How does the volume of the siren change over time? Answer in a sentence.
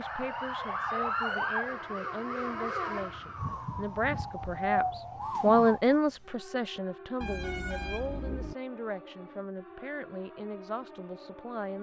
The volume of the siren goes down.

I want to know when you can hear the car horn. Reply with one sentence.
You can hear the car horn from 7.2 to 8.6 s.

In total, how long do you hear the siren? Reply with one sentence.
You can hear the siren for 12 seconds altogether.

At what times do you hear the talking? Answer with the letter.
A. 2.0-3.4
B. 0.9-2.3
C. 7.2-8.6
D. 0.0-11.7
D.